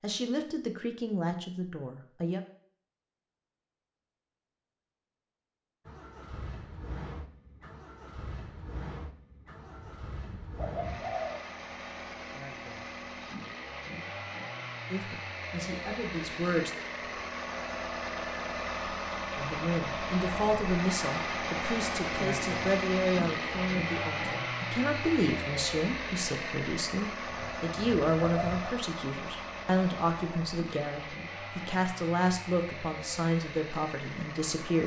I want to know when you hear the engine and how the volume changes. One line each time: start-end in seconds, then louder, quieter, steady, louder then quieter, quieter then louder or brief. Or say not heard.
5.8-34.8 louder then quieter.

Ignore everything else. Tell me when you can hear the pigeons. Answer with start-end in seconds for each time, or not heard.
9.6-11.4, 27.2-28.8.